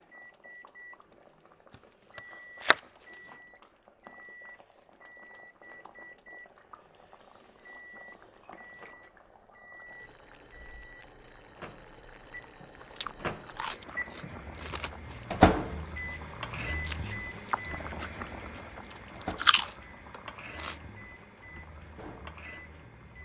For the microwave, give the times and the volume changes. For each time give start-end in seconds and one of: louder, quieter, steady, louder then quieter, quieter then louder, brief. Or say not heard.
0.0-23.2 louder then quieter.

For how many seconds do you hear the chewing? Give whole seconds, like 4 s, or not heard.
8 s.